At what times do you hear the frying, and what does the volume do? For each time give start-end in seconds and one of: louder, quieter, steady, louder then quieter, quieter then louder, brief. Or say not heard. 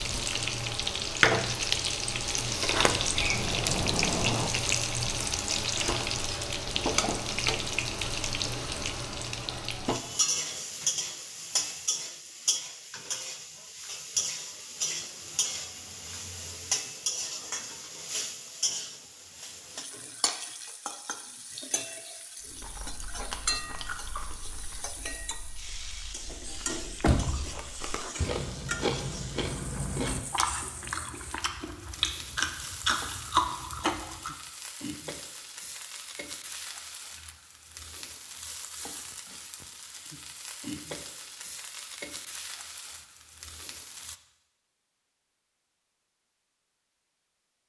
0.0-44.1 quieter.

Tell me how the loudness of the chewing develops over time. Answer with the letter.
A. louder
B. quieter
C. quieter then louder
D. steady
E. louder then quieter
C.